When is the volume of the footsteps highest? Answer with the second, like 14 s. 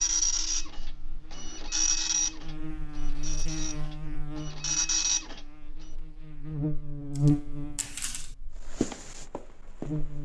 9 s.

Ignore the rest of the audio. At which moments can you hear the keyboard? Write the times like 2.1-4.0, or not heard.
not heard.